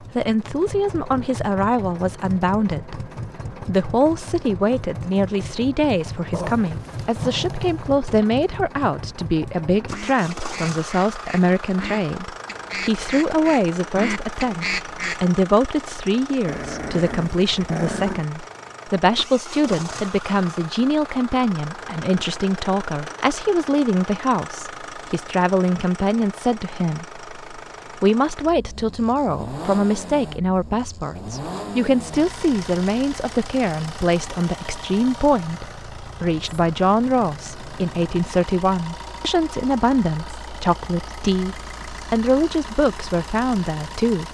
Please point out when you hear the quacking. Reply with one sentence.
You can hear the quacking from 9.9 to 15.2 s.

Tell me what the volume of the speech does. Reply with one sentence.
The volume of the speech stays about the same.